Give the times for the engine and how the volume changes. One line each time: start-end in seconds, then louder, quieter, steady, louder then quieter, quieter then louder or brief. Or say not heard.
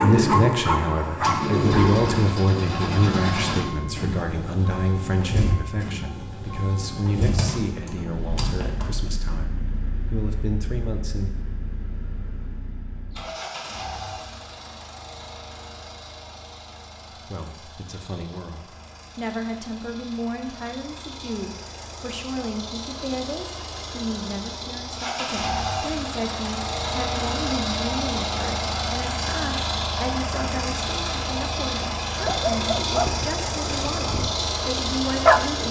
0.0-35.6 quieter then louder.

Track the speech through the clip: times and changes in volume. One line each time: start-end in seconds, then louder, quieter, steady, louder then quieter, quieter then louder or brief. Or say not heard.
0.0-11.3 quieter
17.2-35.6 steady.